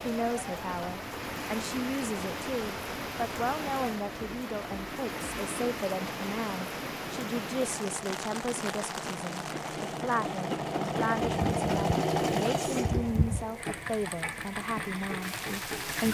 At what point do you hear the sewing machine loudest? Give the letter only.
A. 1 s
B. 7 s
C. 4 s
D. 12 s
D.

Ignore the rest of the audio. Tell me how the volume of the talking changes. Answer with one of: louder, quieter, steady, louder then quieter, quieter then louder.
steady.